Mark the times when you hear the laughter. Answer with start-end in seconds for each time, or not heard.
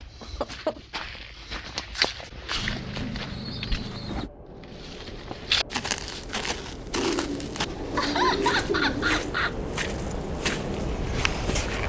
0.2-0.8, 7.5-9.6.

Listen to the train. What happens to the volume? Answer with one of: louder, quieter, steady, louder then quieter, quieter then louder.
louder.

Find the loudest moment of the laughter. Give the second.
8 s.